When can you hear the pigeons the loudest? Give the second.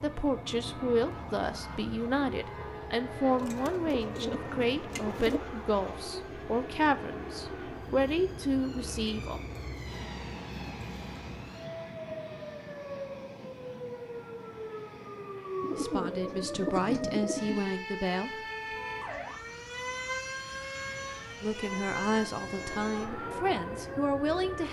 17 s.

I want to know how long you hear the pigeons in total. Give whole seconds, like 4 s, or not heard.
4 s.